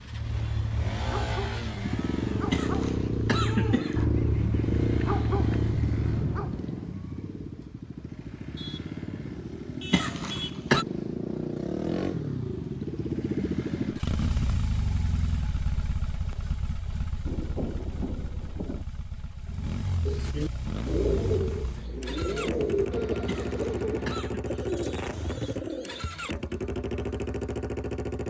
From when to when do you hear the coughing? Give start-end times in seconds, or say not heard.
2.5-4.0, 9.9-10.8, 23.2-24.4.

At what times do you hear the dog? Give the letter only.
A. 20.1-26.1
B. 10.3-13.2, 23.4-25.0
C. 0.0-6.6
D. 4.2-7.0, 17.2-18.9
C.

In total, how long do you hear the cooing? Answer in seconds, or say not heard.
6 s.